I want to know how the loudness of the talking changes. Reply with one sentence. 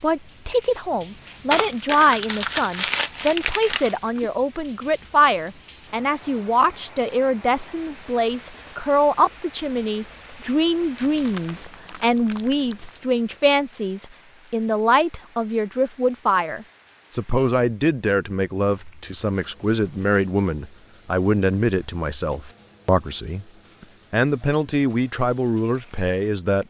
The volume of the talking stays about the same.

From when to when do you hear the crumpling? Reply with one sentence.
You can hear the crumpling from 1.5 to 4.3 s, from 10.9 to 12.9 s and from 18.6 to 20.2 s.